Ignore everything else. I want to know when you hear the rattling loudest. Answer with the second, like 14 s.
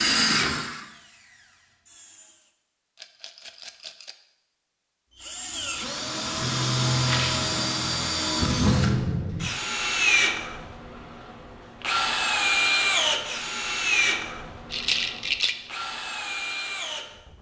15 s.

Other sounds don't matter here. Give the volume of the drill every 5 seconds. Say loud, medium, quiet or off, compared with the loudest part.
loud, loud, loud, medium.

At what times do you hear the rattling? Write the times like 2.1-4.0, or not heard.
3.0-4.2, 7.0-7.4, 14.7-15.6.